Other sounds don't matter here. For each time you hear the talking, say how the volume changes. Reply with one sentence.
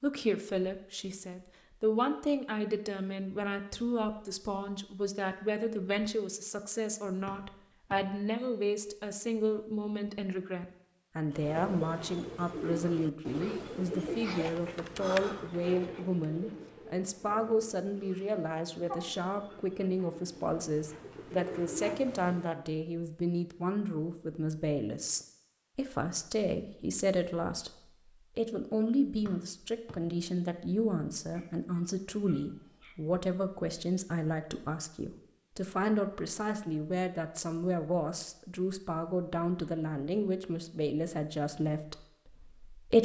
You can hear the talking from 0.0 to 43.0 s, at a steady volume.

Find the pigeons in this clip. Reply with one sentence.
The pigeons can be heard from 11.3 to 22.6 s.